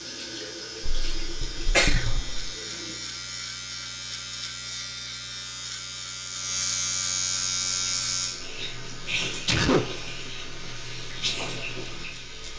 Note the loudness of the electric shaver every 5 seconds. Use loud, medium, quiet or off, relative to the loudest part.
medium, loud, quiet.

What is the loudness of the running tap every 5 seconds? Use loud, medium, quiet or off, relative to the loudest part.
medium, loud, loud.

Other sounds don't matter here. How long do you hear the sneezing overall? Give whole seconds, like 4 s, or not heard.
2 s.